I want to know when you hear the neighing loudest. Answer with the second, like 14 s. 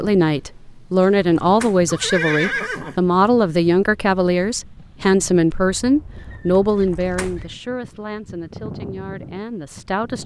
2 s.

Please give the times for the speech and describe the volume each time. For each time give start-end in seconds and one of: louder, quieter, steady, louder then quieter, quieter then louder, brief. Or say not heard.
0.0-10.2 quieter.